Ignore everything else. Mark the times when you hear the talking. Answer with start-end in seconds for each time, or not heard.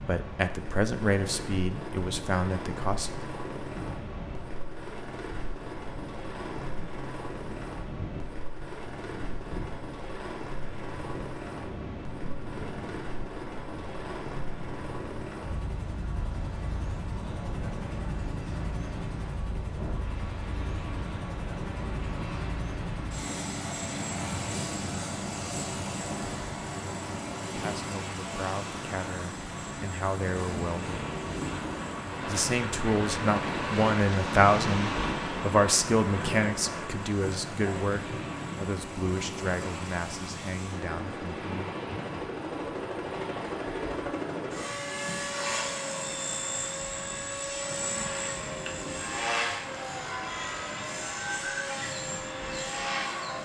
0.1-3.3, 27.6-31.1, 32.2-41.9.